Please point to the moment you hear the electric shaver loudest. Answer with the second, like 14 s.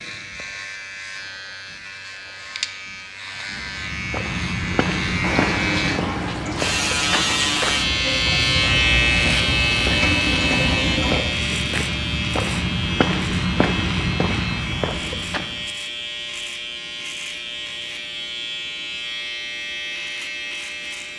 9 s.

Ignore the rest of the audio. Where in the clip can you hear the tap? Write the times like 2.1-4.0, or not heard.
5.2-11.2.